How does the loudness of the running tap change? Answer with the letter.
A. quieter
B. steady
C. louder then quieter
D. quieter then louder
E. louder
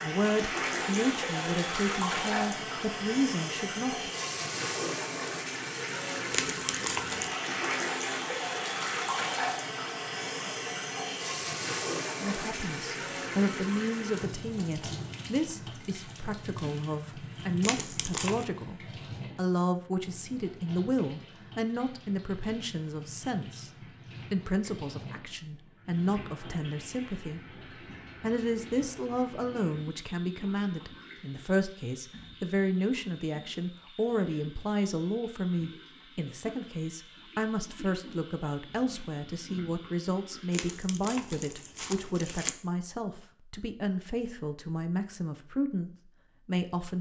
A.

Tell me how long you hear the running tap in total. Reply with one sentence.
The running tap can be heard for 41 seconds in total.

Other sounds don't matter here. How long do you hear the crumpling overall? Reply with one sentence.
You can hear the crumpling for 4 seconds altogether.